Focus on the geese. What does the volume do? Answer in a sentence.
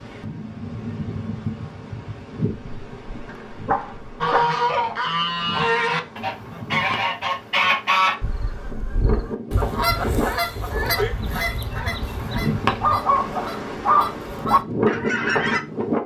The loudness of the geese goes down.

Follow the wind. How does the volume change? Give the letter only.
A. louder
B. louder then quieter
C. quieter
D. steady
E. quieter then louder
E.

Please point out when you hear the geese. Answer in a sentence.
The geese can be heard from 4.2 to 15.6 s.